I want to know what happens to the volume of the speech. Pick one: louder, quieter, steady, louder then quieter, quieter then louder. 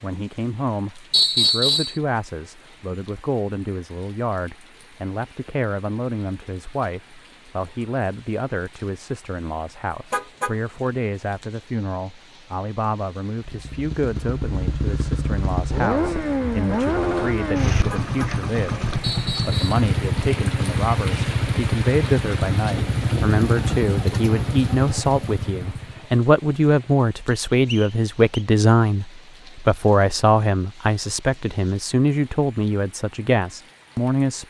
louder.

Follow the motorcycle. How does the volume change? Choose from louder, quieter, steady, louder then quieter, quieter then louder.
steady.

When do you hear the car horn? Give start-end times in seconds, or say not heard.
10.1-10.6, 17.9-18.4.